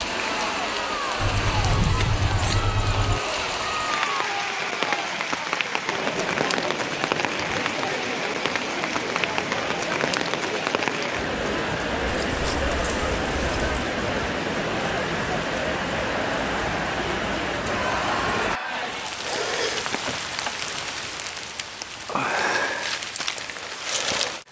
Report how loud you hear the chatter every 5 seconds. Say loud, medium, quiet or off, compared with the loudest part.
loud, loud, loud, loud, off.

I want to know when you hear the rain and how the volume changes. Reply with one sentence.
You can hear the rain from 0.0 to 24.4 s, at a steady volume.